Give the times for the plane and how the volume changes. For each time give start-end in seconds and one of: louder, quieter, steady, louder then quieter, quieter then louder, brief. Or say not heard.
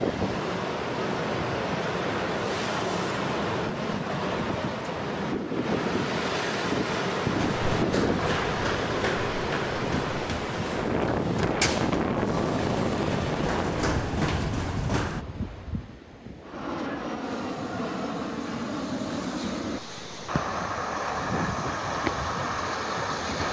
16.4-23.4 steady.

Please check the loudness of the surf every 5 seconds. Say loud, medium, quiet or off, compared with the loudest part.
loud, loud, loud, quiet, medium.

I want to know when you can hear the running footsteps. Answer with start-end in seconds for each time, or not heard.
7.3-15.2.